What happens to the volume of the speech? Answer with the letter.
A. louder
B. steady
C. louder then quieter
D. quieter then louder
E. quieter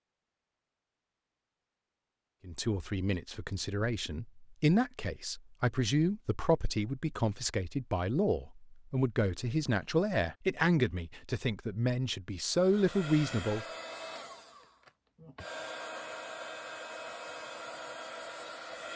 B.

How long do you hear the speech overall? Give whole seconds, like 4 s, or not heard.
11 s.